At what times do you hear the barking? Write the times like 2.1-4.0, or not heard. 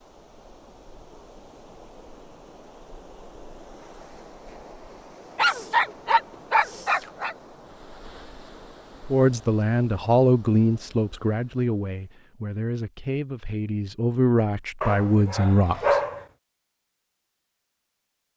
5.3-7.3, 14.8-16.2.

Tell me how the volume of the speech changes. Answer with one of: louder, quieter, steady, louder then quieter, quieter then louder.
quieter then louder.